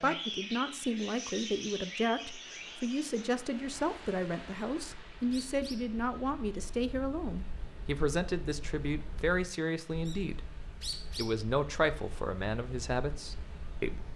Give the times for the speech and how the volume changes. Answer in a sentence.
You can hear the speech from 0.0 to 14.1 s, at a steady volume.